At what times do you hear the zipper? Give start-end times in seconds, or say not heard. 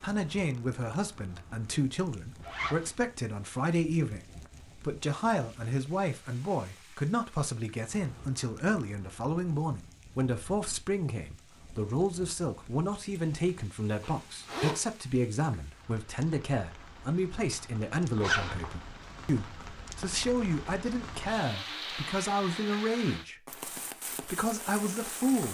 2.4-2.9, 14.0-14.8, 18.2-18.8.